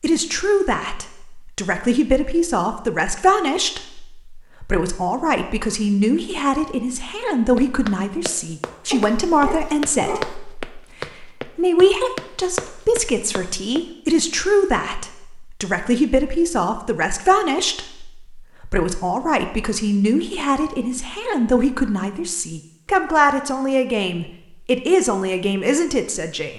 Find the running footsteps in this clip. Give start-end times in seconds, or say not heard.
7.5-13.8.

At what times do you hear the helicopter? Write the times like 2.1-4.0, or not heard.
not heard.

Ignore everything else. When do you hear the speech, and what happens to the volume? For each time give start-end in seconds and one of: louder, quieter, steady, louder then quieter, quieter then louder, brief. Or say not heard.
0.0-26.5 steady.